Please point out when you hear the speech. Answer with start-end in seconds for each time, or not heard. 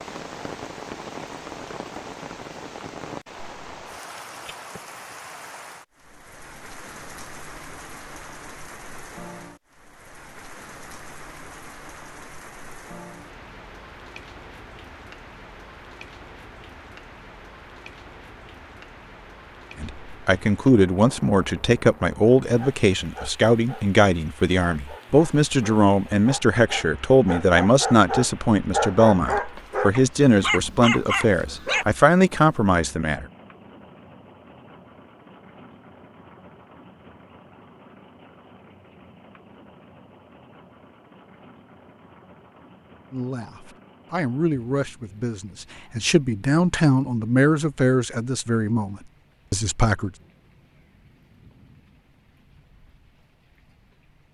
19.8-33.2, 43.1-50.1.